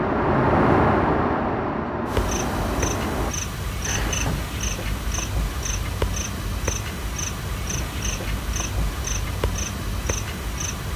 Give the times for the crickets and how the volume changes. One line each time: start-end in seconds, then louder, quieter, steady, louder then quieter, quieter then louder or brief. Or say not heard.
2.0-10.9 steady.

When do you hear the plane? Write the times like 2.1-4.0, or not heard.
0.0-3.4.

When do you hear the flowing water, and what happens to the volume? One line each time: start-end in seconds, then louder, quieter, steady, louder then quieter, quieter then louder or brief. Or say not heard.
not heard.